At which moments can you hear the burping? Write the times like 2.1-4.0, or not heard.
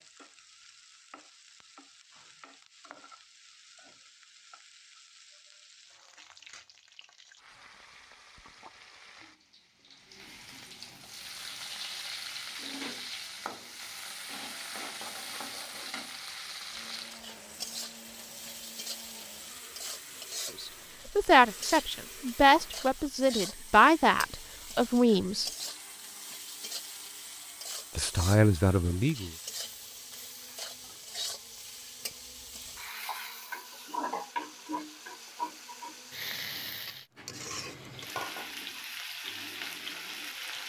not heard.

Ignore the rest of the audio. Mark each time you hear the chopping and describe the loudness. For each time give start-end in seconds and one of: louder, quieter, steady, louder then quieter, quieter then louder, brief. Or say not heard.
not heard.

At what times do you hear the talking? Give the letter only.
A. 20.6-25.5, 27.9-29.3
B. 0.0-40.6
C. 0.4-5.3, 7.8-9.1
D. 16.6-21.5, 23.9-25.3
A.